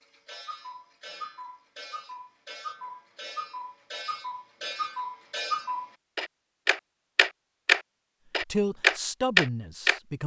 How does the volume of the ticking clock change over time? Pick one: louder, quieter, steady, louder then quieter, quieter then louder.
louder.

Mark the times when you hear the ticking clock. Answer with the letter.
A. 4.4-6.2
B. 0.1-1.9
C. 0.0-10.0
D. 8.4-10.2
C.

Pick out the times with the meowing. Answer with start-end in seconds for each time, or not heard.
not heard.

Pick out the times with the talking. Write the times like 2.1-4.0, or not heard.
8.4-10.2.